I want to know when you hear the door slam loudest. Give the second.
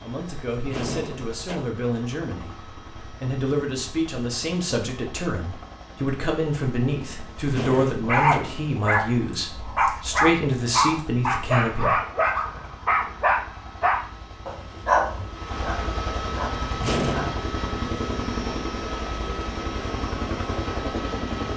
17 s.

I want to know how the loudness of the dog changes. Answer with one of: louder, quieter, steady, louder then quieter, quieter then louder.
quieter.